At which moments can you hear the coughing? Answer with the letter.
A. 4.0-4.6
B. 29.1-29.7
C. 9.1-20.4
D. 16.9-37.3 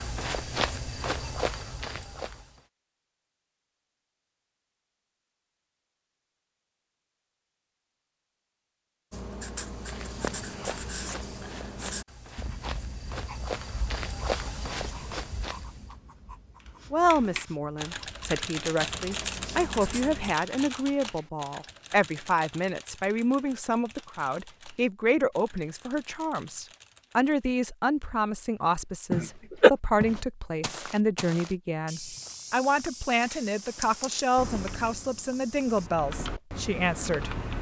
B.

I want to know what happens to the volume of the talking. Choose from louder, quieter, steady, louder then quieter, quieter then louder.
steady.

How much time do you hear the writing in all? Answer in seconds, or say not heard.
11 s.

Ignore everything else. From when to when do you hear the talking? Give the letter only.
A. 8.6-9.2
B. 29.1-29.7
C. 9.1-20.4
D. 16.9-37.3
D.